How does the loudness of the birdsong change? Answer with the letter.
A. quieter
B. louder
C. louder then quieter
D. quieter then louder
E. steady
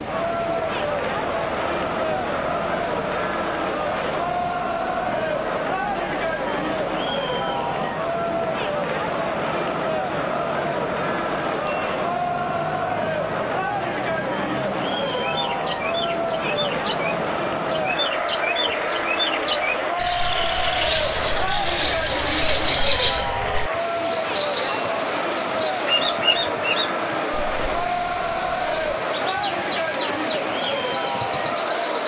C.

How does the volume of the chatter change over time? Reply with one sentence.
The loudness of the chatter stays about the same.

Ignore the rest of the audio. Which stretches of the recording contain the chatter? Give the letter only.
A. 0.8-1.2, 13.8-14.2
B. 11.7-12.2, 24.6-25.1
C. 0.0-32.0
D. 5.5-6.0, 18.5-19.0
C.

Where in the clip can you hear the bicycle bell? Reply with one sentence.
You can hear the bicycle bell from 11.7 to 12.2 s and from 24.6 to 25.1 s.